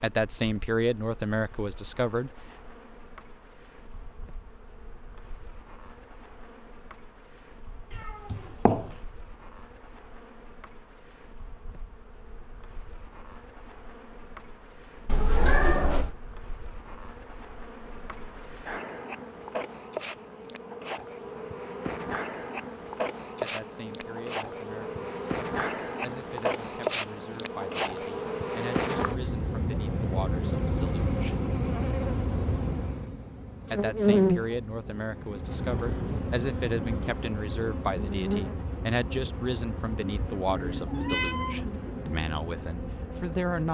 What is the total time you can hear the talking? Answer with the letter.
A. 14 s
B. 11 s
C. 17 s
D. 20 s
D.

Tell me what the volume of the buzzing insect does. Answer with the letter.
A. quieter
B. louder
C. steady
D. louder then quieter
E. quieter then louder
D.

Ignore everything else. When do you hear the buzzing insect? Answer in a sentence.
The buzzing insect can be heard from 0.0 to 43.6 s.